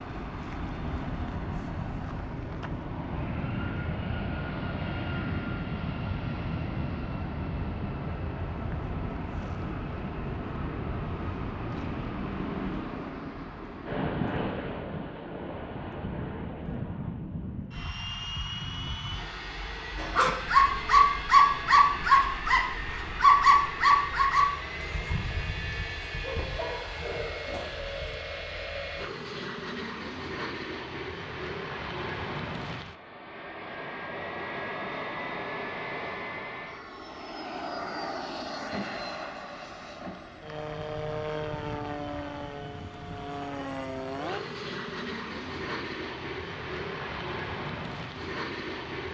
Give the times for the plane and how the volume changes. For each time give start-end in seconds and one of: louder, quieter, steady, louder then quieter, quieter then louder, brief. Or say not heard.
0.0-49.0 steady.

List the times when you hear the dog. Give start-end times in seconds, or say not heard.
19.9-28.1.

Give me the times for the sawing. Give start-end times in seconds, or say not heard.
not heard.